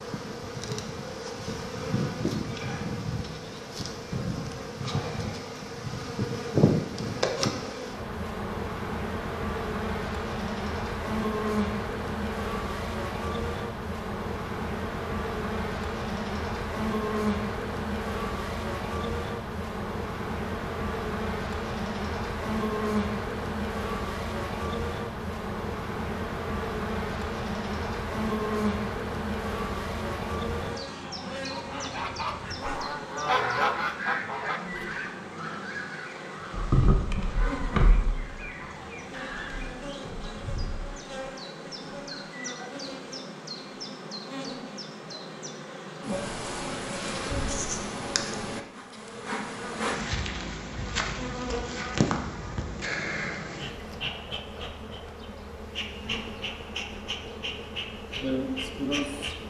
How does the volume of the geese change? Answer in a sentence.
The volume of the geese goes up, then down.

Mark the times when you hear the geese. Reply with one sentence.
The geese can be heard from 30.8 to 39.9 s.